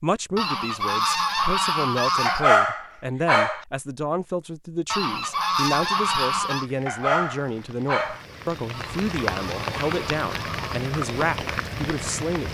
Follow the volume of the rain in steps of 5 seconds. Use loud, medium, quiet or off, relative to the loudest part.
off, loud, loud.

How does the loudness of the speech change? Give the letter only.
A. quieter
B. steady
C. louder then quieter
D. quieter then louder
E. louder
B.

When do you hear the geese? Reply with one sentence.
You can hear the geese from 0.3 to 2.5 s, from 4.9 to 6.7 s and from 8.7 to 10.8 s.